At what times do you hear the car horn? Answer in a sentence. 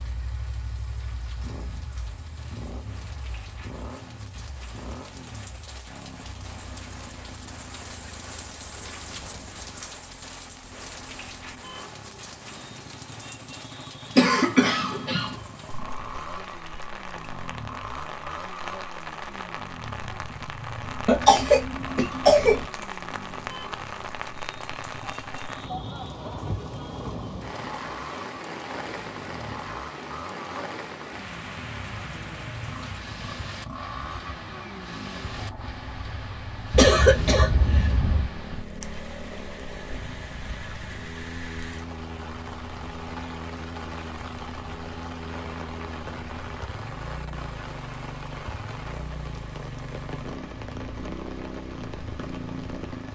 You can't hear the car horn here.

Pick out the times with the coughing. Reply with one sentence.
You can hear the coughing from 14.2 to 15.3 s, from 21.1 to 22.6 s and from 36.7 to 38.3 s.